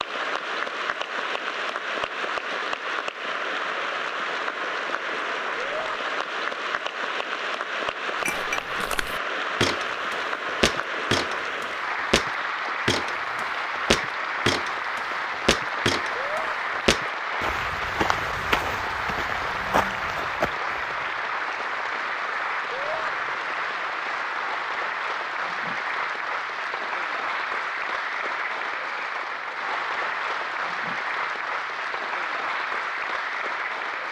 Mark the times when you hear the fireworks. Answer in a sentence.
The fireworks can't be heard in this clip.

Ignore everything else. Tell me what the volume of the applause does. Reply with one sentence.
The volume of the applause stays about the same.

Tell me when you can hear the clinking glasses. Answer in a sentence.
You can hear the clinking glasses from 8.2 to 8.7 s.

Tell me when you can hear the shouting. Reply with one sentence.
You can hear the shouting from 5.5 to 6.0 s, from 16.1 to 16.6 s and from 22.7 to 23.1 s.